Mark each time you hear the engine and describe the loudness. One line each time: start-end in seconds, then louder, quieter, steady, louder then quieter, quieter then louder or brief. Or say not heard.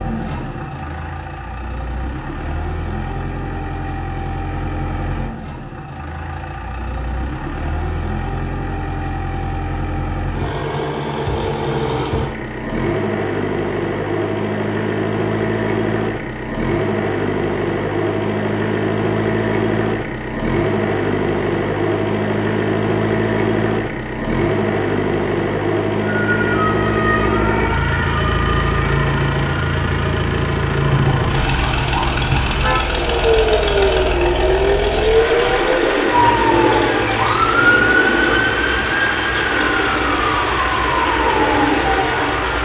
0.0-42.6 louder.